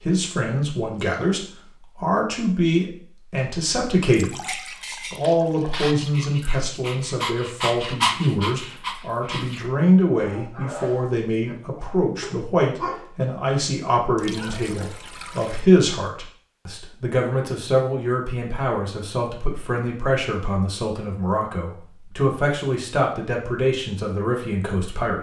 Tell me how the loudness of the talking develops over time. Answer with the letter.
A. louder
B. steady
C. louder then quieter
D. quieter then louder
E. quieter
B.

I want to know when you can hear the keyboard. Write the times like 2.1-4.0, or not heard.
not heard.